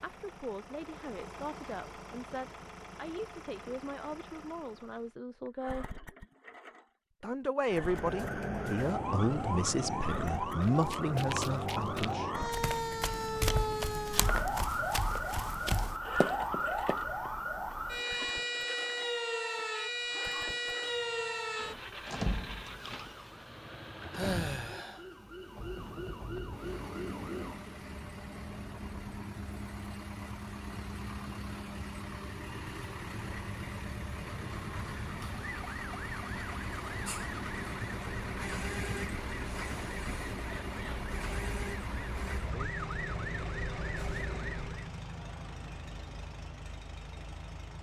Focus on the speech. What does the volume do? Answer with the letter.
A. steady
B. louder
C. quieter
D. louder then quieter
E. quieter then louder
B.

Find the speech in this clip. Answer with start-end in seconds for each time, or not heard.
0.0-5.8, 7.2-12.3.